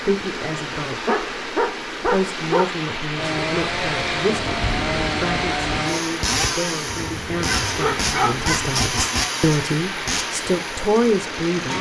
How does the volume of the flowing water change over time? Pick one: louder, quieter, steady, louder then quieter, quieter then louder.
steady.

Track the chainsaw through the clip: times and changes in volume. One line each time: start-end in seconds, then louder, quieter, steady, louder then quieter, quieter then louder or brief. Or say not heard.
3.1-11.7 quieter.